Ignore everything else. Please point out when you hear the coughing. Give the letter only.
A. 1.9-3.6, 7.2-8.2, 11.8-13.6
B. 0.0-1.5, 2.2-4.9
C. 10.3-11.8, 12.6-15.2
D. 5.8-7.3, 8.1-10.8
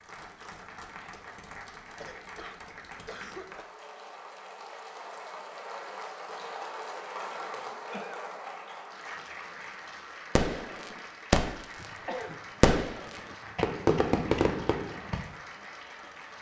A.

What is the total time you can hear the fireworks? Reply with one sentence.
The fireworks can be heard for 4 seconds in total.